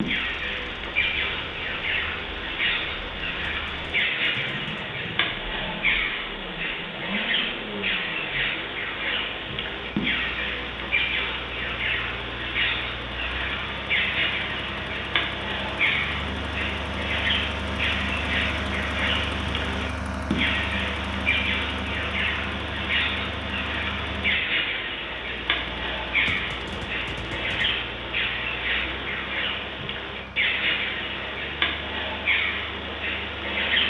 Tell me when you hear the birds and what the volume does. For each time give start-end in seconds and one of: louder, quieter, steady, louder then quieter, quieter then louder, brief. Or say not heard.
0.0-33.8 steady.